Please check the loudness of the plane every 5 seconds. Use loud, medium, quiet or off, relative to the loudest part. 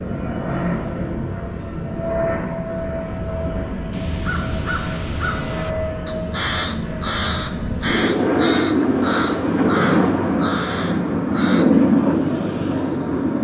medium, loud, loud.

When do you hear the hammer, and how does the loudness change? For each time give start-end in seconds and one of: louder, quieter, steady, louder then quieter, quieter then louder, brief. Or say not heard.
not heard.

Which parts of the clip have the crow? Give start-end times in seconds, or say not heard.
3.9-11.7.